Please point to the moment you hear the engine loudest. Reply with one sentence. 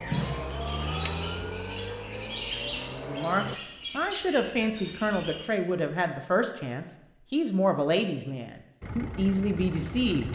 The volume of the engine peaks at 1 second.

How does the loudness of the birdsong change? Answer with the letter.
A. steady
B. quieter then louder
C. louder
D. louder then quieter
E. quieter
D.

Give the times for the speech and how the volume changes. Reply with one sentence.
You can hear the speech from 3.0 to 10.2 s, at a steady volume.